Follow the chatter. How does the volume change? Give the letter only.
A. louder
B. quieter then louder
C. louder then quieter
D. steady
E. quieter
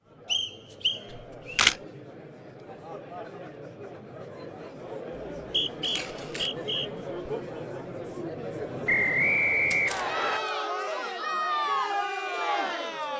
A.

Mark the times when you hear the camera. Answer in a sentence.
The camera can be heard from 1.1 to 1.8 s, from 5.8 to 6.5 s and from 9.7 to 10.6 s.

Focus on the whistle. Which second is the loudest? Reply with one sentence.
The loudest moment of the whistle is at 9 seconds.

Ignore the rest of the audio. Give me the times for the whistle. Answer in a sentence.
The whistle can be heard from 0.2 to 1.7 s, from 5.4 to 6.9 s and from 8.8 to 10.4 s.